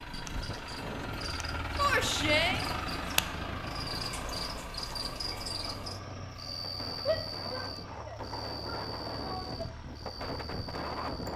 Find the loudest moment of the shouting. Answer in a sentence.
The volume of the shouting peaks at 2 seconds.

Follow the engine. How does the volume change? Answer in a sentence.
The volume of the engine goes down.